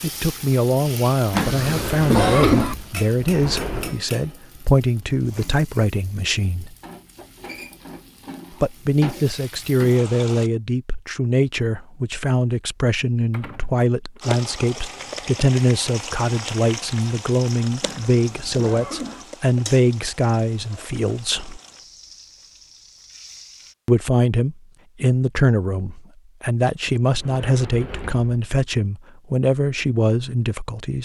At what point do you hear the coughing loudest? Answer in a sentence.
The loudest moment of the coughing is at 2 seconds.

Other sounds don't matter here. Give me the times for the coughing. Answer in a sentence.
The coughing can be heard from 1.3 to 2.8 s and from 17.8 to 19.2 s.